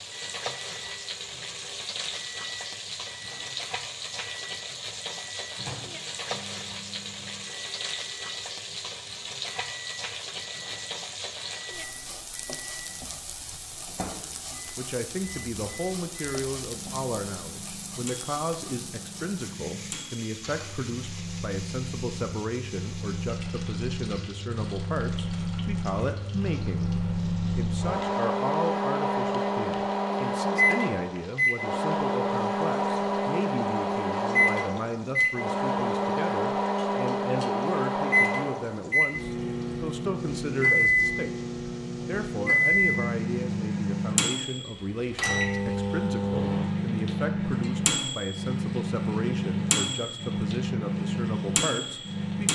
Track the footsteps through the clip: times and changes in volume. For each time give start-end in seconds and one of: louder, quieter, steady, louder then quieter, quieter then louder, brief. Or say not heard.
not heard.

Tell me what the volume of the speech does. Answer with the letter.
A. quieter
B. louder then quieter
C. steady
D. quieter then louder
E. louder
C.